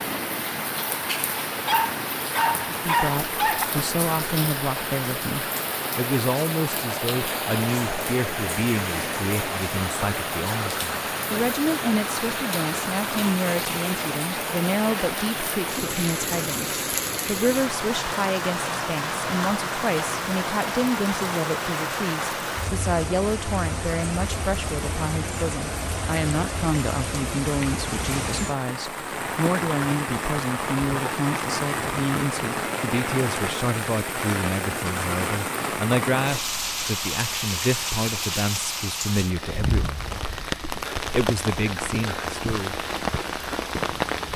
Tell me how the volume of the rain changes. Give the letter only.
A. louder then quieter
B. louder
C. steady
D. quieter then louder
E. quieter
C.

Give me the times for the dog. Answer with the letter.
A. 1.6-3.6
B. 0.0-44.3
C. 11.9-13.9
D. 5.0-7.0
A.